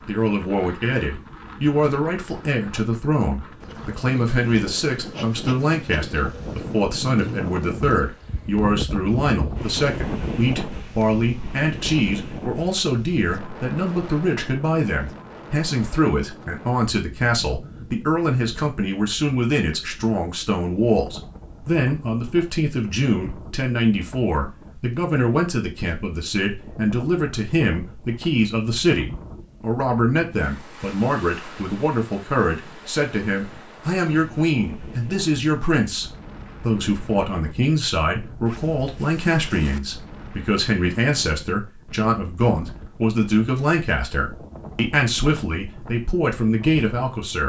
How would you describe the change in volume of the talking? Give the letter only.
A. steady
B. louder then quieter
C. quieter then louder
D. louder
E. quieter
A.